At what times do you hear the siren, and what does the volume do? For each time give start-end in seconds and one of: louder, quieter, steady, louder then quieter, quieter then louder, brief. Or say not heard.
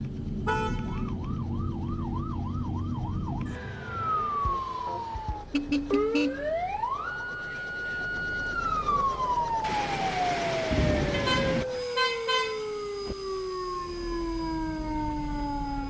0.0-15.8 steady.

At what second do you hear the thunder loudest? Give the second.
11 s.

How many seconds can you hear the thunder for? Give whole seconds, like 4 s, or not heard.
2 s.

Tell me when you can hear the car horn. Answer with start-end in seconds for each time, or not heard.
0.5-1.1, 5.5-6.5, 11.1-13.2.